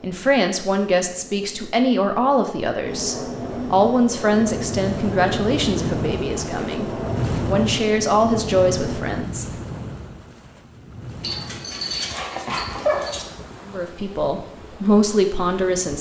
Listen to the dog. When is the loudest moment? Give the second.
13 s.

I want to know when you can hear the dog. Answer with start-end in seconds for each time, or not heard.
11.2-13.2.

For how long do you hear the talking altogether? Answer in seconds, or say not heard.
12 s.